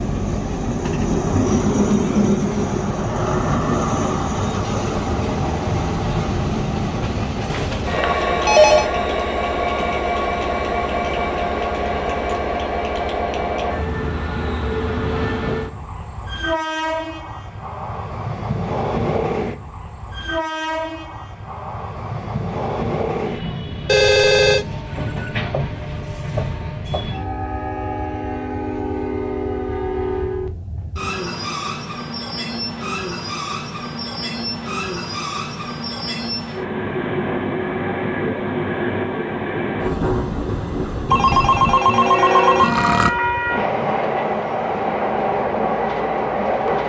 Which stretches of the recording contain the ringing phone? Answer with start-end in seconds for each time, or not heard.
7.5-8.9, 23.9-25.4, 41.1-43.1.